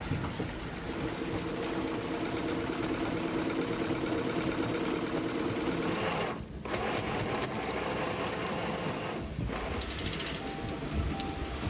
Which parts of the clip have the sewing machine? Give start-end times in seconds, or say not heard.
0.0-11.6.